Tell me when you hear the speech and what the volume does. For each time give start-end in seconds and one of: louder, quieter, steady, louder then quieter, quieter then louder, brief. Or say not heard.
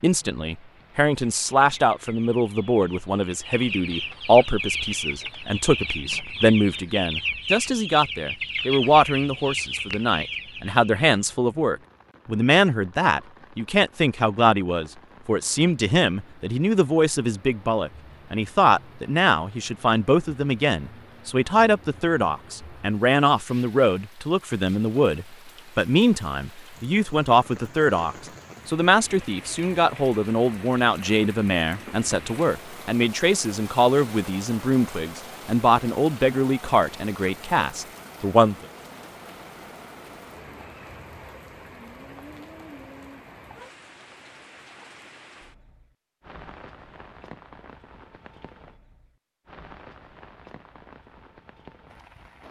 0.0-38.5 steady.